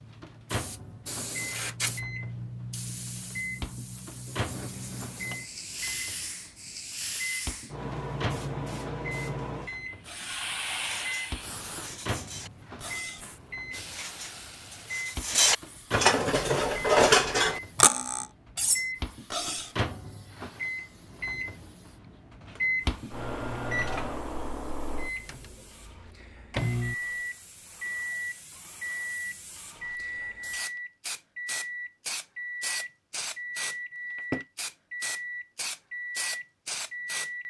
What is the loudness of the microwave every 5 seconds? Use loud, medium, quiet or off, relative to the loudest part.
medium, medium, medium, loud, loud, loud, loud, loud.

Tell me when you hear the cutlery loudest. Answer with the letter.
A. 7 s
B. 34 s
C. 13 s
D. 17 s
D.